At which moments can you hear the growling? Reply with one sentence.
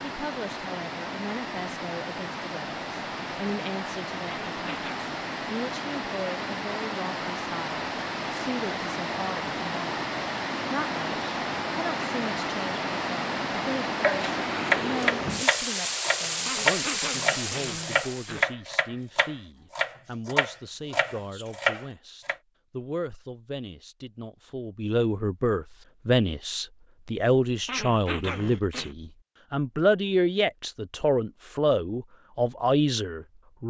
The growling can be heard from 4.2 to 5.1 s, from 16.4 to 18.4 s and from 27.6 to 28.9 s.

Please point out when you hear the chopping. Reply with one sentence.
The chopping can be heard from 14.0 to 22.4 s.